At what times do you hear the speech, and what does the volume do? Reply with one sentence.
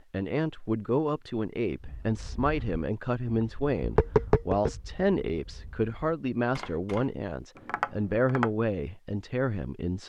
You can hear the speech from 0.1 to 10.0 s, at a steady volume.